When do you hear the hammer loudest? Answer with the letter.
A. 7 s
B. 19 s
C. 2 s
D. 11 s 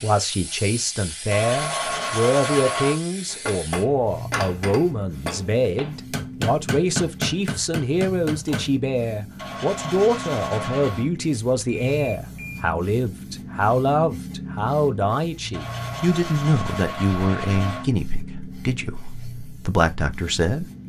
A.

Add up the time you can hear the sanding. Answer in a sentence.
You can hear the sanding for 6 seconds altogether.